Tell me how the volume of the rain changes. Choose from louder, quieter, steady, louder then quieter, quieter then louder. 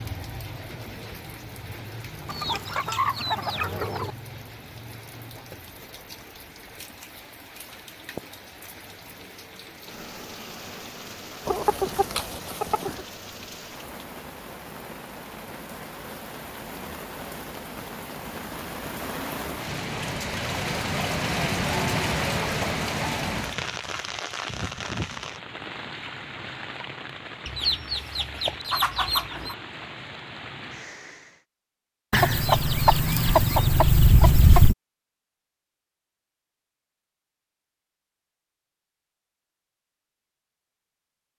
louder then quieter.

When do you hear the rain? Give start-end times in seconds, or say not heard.
0.0-31.4.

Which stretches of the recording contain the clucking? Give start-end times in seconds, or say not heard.
2.2-4.2, 11.4-13.1, 27.4-29.6, 32.1-34.8.